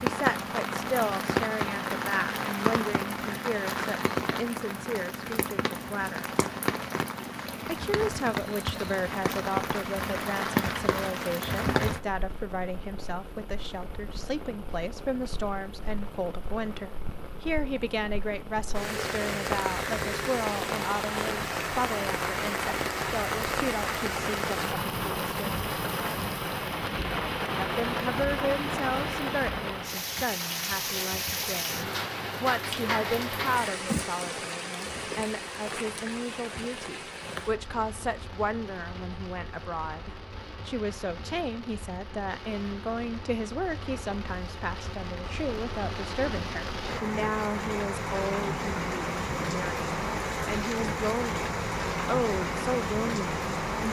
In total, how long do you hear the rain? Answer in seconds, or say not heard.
54 s.